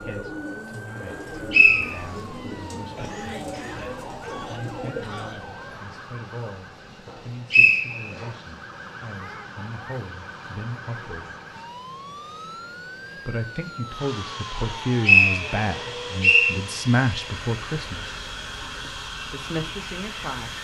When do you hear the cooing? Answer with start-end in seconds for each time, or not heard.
0.0-5.4.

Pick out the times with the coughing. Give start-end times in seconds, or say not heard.
3.0-5.4.